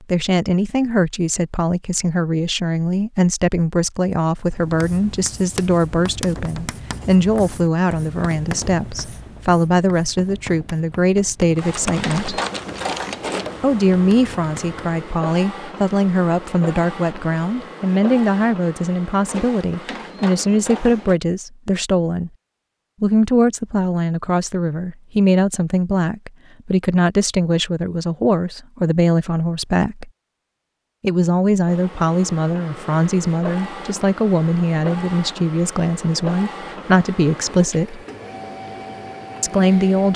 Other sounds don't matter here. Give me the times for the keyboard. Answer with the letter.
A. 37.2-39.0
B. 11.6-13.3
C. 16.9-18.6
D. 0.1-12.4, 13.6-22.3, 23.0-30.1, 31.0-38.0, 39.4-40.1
B.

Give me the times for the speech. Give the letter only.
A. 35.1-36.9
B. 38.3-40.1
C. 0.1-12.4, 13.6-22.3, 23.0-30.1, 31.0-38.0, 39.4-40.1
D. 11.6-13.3
C.